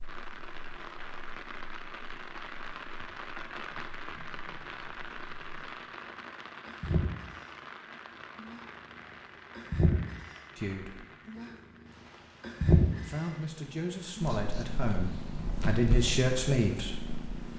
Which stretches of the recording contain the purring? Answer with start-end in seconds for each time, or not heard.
0.0-5.8, 6.7-8.7, 9.6-13.2, 14.2-17.5.